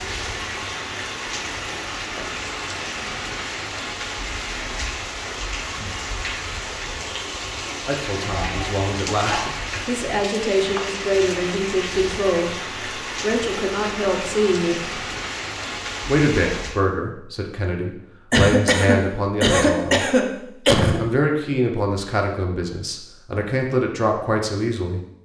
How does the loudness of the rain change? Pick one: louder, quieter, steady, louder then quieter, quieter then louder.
steady.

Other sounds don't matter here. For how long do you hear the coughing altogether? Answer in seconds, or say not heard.
4 s.